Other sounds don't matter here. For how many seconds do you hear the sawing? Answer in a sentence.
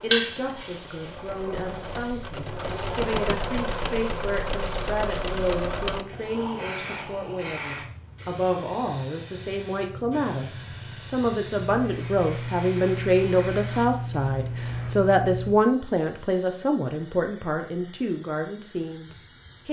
The sawing can't be heard in this clip.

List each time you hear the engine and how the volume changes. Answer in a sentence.
The engine can be heard from 0.2 to 6.0 s, getting louder.